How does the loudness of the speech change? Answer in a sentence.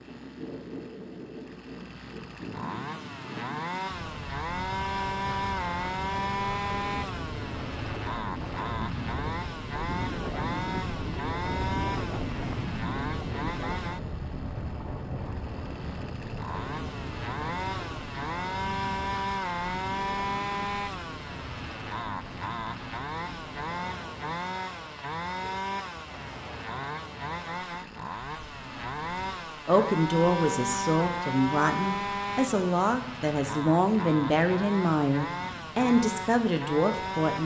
The volume of the speech stays about the same.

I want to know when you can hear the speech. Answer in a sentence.
The speech can be heard from 29.6 to 37.4 s.